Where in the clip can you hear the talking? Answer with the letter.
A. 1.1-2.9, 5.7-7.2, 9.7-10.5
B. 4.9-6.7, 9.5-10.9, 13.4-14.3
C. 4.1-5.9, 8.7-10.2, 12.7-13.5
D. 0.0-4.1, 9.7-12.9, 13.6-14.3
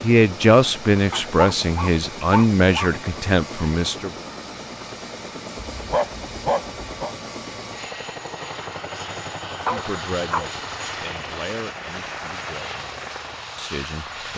D.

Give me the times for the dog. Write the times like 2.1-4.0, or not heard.
1.1-2.9, 5.7-7.2, 9.7-10.5.